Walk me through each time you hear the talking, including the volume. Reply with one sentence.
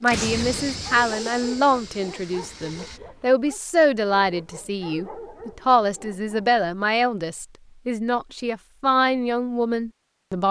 You can hear the talking from 0.0 to 10.4 s, at a steady volume.